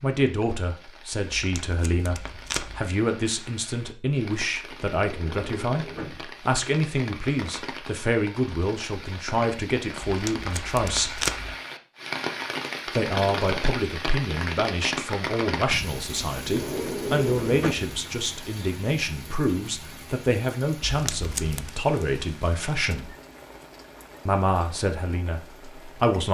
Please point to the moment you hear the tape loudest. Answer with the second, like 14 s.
11 s.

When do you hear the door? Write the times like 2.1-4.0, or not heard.
5.0-6.2, 16.4-17.8.